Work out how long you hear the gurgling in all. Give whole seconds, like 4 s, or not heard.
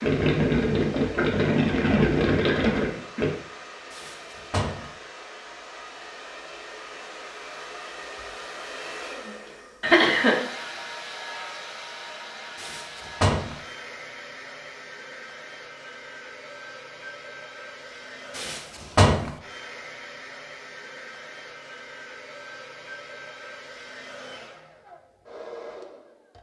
3 s.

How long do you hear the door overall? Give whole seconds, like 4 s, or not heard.
3 s.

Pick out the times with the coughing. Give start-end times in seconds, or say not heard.
9.8-10.3.